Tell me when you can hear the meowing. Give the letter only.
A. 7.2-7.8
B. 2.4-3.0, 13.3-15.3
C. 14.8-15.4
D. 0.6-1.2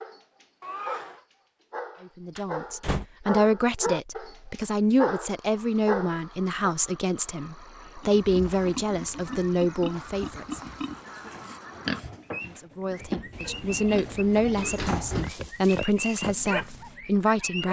D.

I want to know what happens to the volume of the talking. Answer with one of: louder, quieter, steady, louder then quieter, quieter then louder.
steady.